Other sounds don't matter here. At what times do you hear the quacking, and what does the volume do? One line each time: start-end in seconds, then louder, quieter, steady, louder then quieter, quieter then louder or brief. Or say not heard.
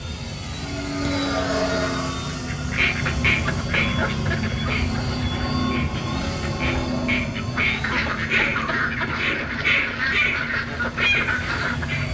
2.5-12.0 quieter then louder.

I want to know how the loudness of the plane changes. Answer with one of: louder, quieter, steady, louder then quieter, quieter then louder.
quieter.